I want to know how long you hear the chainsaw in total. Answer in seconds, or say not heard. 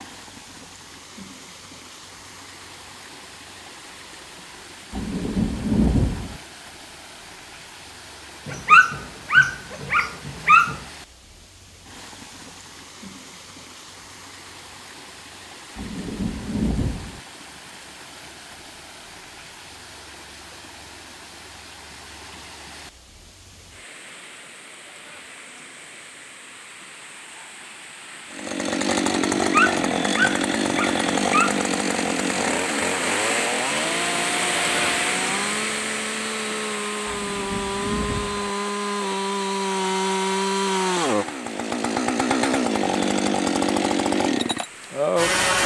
17 s.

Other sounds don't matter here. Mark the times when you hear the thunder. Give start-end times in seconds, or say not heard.
4.9-6.4, 15.8-17.2, 37.0-38.5.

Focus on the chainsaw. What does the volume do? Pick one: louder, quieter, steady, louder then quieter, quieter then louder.
quieter then louder.